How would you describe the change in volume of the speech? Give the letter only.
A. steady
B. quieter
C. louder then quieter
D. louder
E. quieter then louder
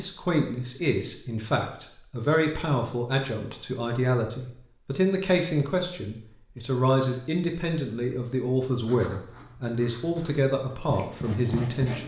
A.